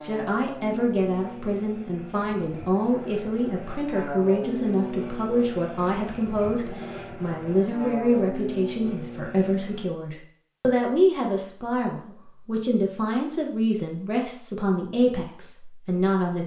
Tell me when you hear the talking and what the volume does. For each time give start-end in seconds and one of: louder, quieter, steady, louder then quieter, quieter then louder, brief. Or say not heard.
0.1-16.4 steady.